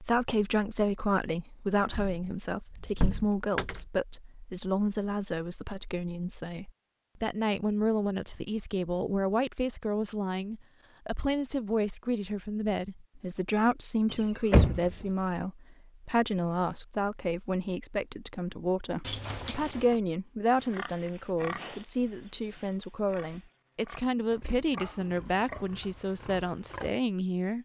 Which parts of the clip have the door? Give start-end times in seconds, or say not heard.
1.9-3.9, 14.1-14.9, 19.0-20.0.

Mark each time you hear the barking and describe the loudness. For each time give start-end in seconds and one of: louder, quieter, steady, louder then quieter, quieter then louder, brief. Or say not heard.
not heard.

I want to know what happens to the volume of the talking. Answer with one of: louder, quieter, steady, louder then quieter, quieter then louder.
steady.